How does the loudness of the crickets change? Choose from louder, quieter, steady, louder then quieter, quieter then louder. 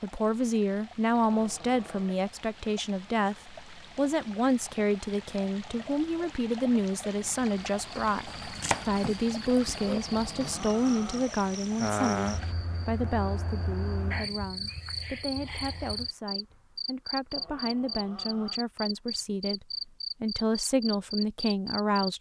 louder.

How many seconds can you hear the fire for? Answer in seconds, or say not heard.
not heard.